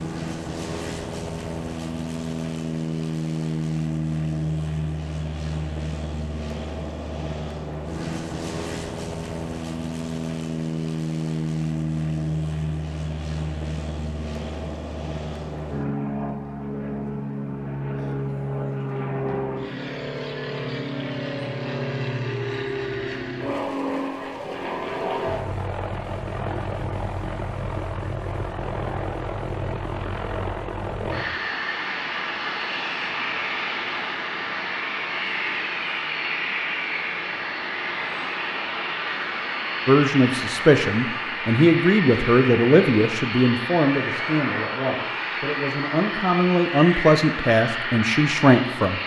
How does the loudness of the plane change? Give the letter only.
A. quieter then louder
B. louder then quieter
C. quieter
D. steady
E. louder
D.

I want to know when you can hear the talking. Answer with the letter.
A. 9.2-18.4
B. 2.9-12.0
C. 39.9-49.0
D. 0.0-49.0
C.